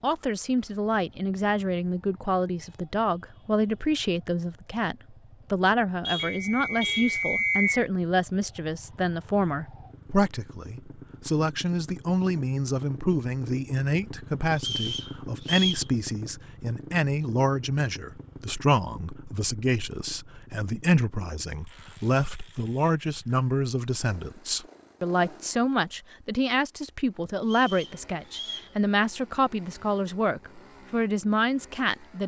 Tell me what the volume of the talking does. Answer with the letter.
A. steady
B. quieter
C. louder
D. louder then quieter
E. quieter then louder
A.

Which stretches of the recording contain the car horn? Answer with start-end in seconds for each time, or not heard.
6.0-7.2.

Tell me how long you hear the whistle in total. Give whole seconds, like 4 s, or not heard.
4 s.